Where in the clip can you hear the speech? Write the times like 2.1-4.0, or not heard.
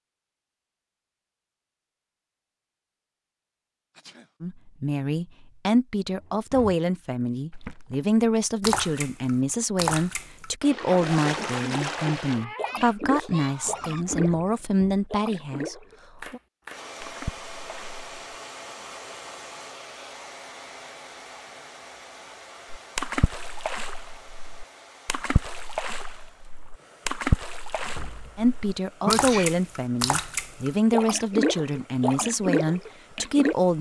4.4-16.4, 28.4-33.7.